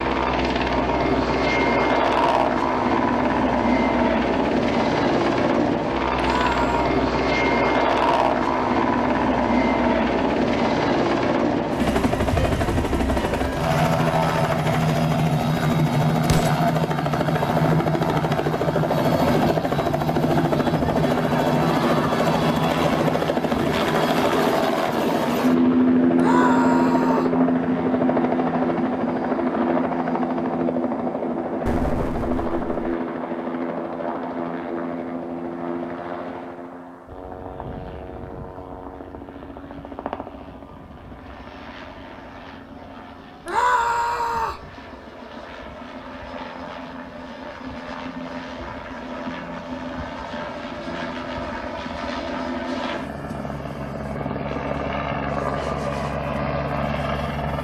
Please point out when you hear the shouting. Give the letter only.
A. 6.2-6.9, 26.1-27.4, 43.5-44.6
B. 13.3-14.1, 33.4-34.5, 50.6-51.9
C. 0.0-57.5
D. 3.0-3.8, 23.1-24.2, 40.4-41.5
A.